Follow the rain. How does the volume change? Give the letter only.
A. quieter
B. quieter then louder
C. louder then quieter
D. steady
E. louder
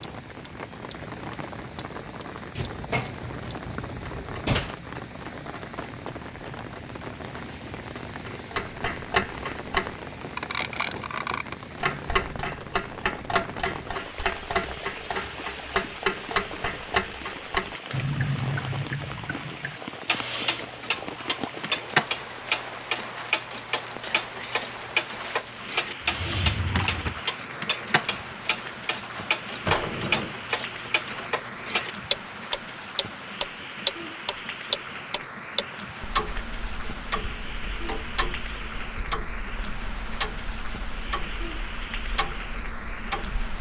D.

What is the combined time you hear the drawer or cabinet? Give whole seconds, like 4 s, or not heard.
4 s.